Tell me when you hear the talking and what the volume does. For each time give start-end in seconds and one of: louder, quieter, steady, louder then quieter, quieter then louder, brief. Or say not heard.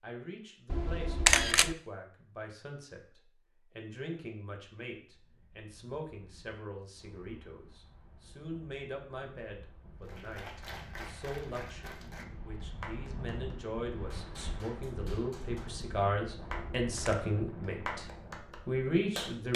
0.0-18.1 louder
18.6-19.5 brief.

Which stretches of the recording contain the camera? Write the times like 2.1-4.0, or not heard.
0.7-1.8, 16.4-17.1.